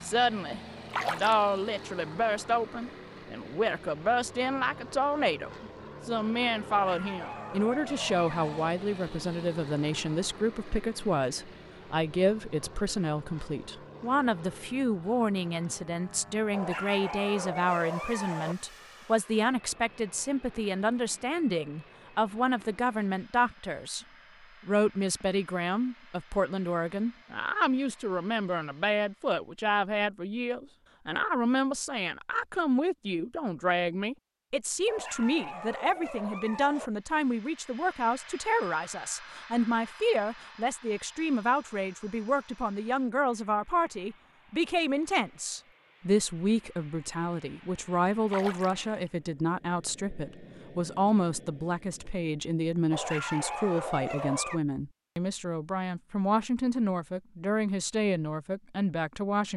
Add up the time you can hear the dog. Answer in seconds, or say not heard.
8 s.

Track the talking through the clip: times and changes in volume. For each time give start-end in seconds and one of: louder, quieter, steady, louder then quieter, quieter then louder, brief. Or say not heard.
0.0-24.1 steady
24.6-59.5 steady.